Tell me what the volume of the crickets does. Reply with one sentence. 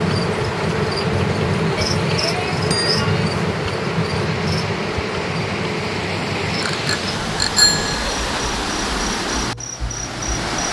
The loudness of the crickets goes down.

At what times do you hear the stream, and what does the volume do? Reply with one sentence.
The stream can be heard from 0.0 to 10.6 s, getting louder.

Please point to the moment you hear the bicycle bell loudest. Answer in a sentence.
The loudest moment of the bicycle bell is at 8 seconds.